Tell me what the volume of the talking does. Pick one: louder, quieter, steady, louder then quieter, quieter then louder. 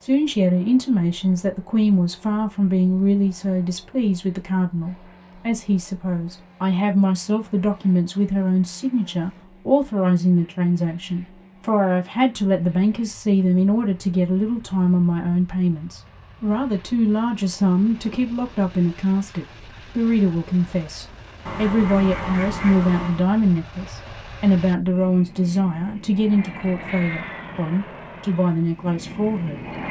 steady.